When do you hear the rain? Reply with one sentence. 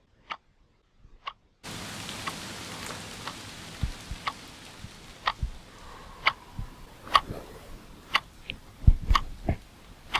The rain can be heard from 1.6 to 10.1 s.